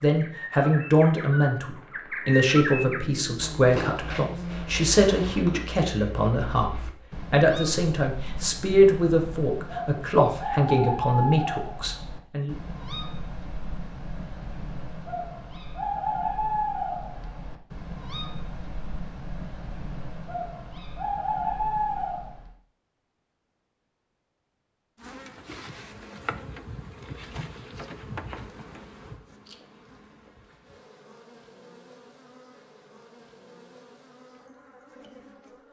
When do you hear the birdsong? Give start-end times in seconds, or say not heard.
0.0-22.6.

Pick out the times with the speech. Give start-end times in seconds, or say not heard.
0.0-12.6.